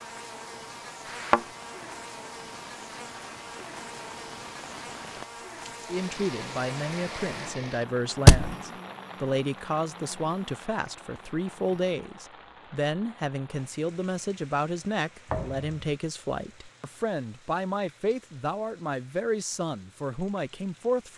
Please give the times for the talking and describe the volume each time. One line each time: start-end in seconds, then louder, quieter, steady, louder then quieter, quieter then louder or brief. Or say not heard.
5.9-21.1 steady.